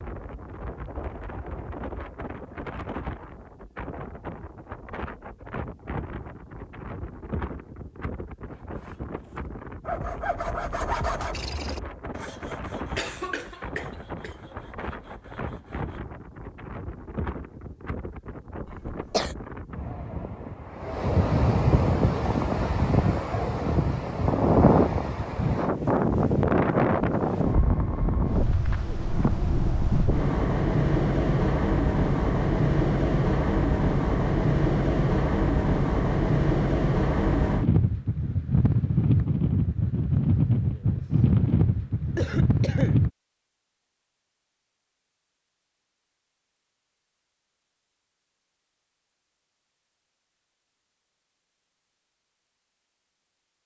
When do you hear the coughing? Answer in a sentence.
The coughing can be heard from 12.9 to 14.3 s, from 18.6 to 19.4 s and from 42.1 to 43.0 s.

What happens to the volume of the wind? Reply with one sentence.
The loudness of the wind goes up.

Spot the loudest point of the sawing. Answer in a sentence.
The loudest moment of the sawing is at 11 seconds.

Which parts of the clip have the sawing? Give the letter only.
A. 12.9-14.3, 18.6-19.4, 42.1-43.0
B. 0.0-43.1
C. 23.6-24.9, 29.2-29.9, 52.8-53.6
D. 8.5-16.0
D.